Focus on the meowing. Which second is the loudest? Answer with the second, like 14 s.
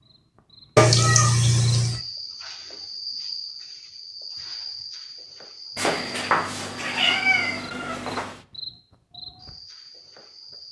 1 s.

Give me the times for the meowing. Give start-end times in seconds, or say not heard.
0.8-2.0, 5.8-8.4.